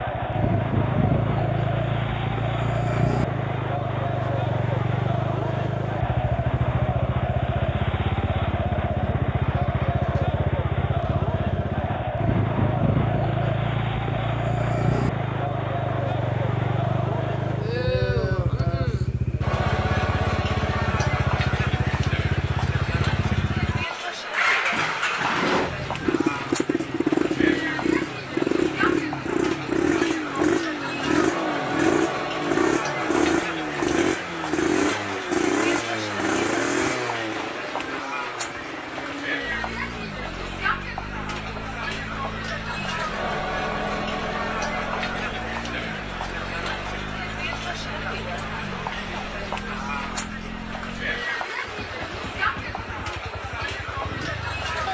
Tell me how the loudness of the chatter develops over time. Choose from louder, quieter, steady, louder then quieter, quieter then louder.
steady.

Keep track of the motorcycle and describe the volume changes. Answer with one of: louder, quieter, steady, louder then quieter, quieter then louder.
quieter.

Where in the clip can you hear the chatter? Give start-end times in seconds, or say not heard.
0.0-54.8.